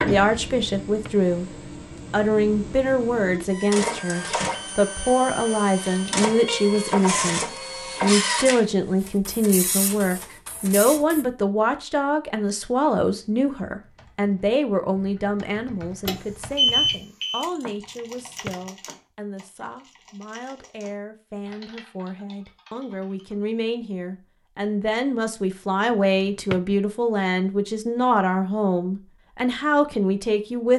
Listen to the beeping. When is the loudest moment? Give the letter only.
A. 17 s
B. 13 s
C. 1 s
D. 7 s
A.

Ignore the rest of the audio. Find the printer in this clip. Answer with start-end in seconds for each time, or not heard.
0.0-11.2.